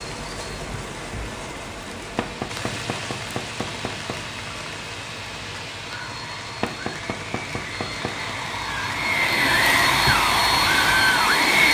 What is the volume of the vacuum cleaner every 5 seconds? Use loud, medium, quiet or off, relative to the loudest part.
quiet, medium, loud.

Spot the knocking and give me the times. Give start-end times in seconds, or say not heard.
2.1-4.2, 6.6-8.3.